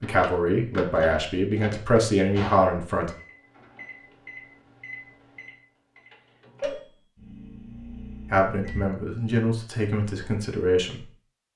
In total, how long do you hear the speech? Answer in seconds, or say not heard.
6 s.